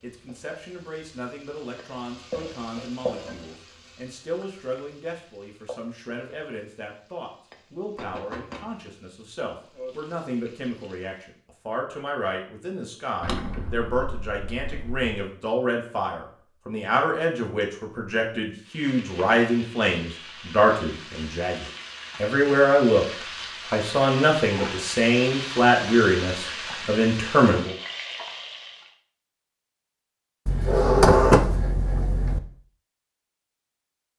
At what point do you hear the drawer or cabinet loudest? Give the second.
31 s.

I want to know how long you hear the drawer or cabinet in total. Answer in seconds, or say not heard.
4 s.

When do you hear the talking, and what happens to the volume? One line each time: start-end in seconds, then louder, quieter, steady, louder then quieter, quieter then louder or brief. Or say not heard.
0.0-27.8 louder.